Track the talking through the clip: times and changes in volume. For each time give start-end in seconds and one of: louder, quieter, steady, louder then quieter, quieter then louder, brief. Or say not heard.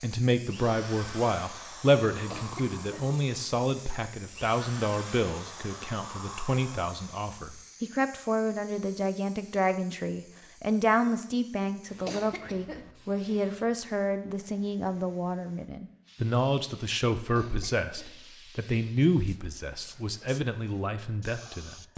0.0-21.9 steady.